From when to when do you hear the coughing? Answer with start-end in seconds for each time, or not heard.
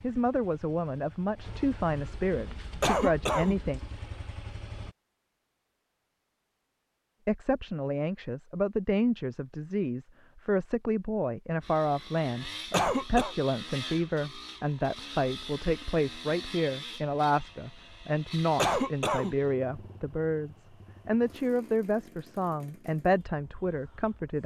2.8-3.5, 12.7-13.3, 18.6-19.4.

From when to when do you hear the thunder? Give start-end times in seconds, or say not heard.
not heard.